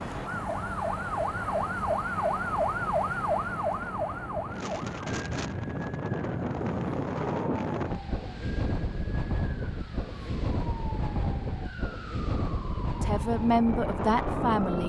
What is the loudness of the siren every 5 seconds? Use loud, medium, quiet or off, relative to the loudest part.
loud, quiet, quiet.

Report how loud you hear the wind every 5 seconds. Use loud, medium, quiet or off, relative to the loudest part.
medium, loud, loud.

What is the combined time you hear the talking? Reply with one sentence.
You can hear the talking for 2 seconds altogether.